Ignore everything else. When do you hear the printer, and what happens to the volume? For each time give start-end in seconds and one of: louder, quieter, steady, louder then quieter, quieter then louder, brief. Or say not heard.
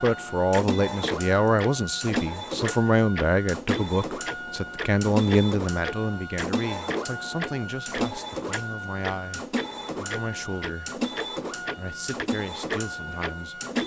0.0-13.8 steady.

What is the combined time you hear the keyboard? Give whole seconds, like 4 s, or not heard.
not heard.